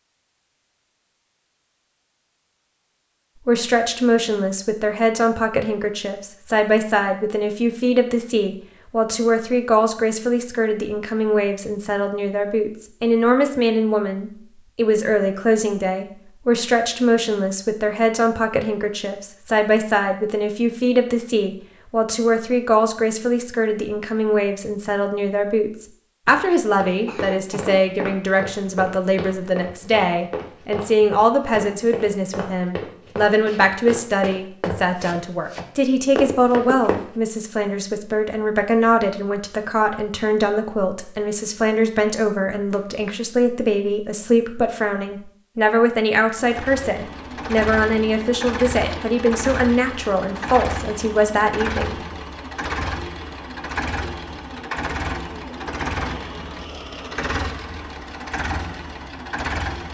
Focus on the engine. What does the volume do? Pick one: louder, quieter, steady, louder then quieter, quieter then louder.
steady.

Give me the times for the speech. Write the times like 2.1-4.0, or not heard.
3.5-52.0.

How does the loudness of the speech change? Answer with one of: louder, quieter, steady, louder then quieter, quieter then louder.
steady.